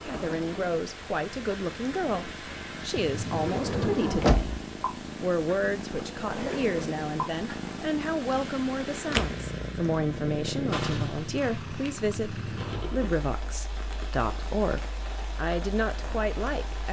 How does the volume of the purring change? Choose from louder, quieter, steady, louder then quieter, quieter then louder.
louder then quieter.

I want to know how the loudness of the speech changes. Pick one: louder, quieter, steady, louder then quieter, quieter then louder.
steady.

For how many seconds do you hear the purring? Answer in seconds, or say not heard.
17 s.